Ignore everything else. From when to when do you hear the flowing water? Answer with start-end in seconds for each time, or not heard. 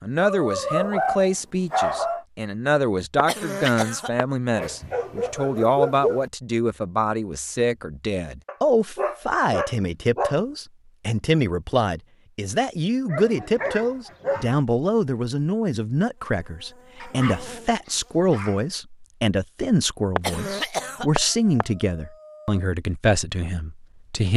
not heard.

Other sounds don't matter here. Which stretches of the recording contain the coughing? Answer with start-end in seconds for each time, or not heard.
3.1-4.2, 20.1-21.6.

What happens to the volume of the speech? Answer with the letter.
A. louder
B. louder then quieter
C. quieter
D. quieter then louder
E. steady
E.